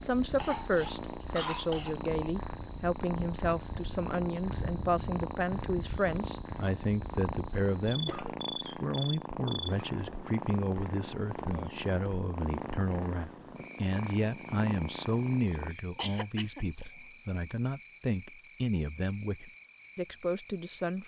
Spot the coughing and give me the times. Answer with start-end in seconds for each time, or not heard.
0.3-1.9, 7.8-8.4, 15.5-16.9.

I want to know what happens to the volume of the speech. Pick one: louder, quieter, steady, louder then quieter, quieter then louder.
steady.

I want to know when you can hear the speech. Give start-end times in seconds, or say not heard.
0.0-21.0.